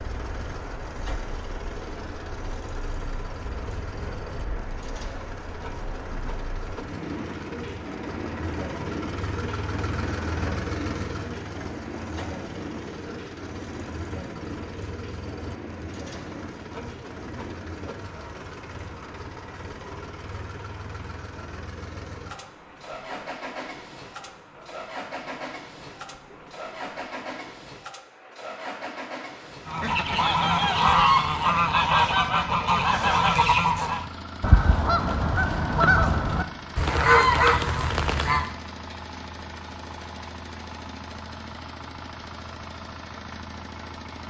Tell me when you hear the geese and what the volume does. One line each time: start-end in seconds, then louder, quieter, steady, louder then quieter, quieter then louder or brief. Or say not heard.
29.6-38.5 steady.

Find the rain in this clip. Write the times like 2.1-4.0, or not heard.
0.0-29.6.